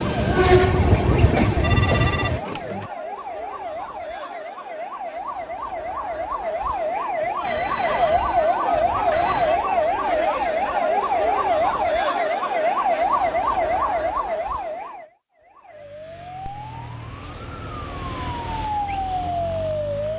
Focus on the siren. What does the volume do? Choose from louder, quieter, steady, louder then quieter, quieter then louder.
louder then quieter.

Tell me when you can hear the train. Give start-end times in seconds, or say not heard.
0.0-2.4.